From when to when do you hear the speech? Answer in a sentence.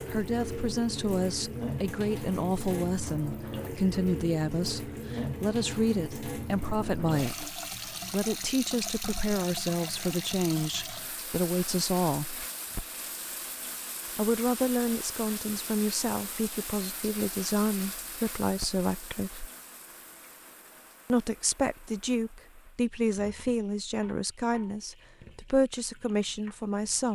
You can hear the speech from 0.1 to 12.4 s, from 14.2 to 19.5 s and from 21.1 to 27.0 s.